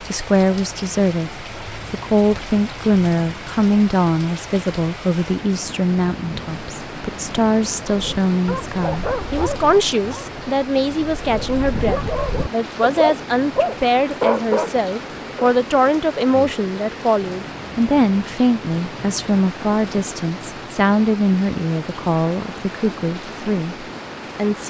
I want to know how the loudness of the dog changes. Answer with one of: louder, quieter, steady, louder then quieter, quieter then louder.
quieter then louder.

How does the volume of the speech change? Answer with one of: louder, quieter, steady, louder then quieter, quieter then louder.
steady.